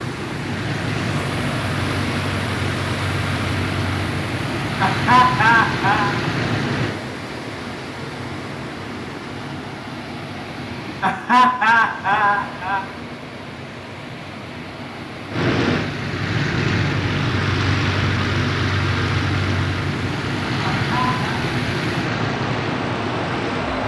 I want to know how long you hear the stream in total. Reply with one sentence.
You can hear the stream for 24 seconds altogether.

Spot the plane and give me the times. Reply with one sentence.
The plane can be heard from 0.0 to 7.0 s and from 15.3 to 23.8 s.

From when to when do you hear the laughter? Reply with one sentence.
The laughter can be heard from 4.8 to 6.2 s, from 11.0 to 12.8 s and from 20.8 to 21.2 s.